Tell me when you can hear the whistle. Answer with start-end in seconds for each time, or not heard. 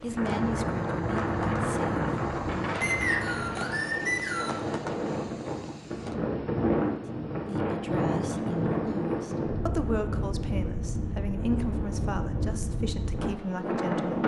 2.8-4.6.